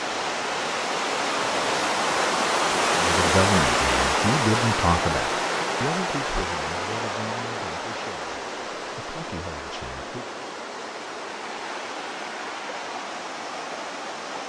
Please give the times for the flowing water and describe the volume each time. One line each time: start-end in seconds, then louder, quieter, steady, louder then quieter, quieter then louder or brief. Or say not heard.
0.0-14.4 quieter.